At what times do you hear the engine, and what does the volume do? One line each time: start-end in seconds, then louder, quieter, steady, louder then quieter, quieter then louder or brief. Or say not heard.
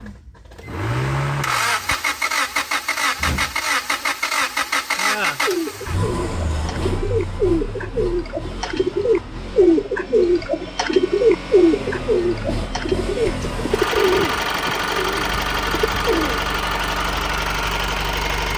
0.0-18.5 quieter then louder.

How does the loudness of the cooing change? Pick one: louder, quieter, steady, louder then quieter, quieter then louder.
louder then quieter.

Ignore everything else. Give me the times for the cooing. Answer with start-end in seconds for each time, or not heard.
5.5-16.5.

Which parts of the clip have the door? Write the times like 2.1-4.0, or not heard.
3.1-4.1.